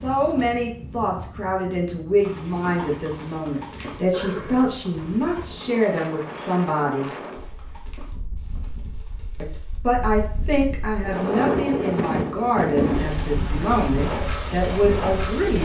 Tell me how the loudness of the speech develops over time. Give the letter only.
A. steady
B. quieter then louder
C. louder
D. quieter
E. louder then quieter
A.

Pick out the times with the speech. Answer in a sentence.
The speech can be heard from 0.0 to 7.1 s and from 9.4 to 15.6 s.